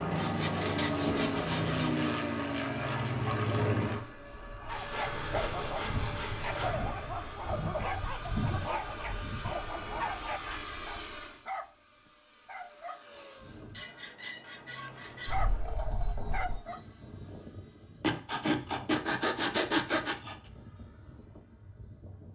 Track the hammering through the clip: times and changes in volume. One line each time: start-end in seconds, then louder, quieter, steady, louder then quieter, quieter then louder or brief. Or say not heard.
not heard.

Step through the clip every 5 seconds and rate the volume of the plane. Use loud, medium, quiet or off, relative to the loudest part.
loud, medium, medium, quiet, quiet.